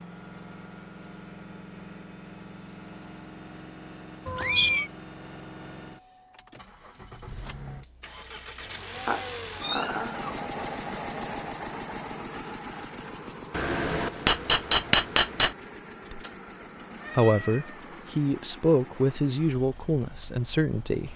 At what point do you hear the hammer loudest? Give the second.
15 s.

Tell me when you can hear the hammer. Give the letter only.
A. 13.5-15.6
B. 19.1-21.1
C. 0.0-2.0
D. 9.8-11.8
A.